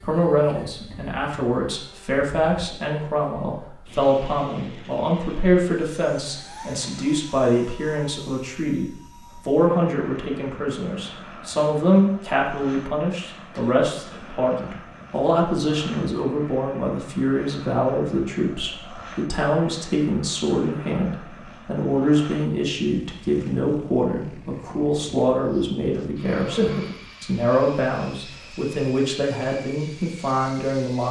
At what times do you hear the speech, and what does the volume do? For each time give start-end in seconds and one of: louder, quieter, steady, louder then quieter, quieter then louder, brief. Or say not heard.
0.0-31.0 steady.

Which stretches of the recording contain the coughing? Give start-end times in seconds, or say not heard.
0.5-1.1, 13.5-14.8, 26.4-26.9.